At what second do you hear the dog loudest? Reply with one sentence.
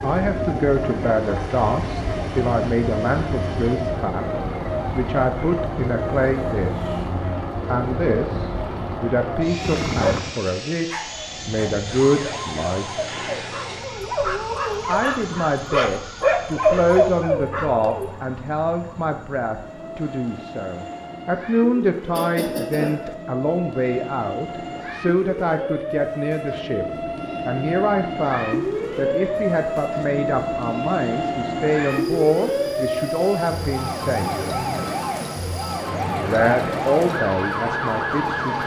The volume of the dog peaks at 17 seconds.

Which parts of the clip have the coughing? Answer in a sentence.
The coughing can be heard from 22.1 to 23.0 s.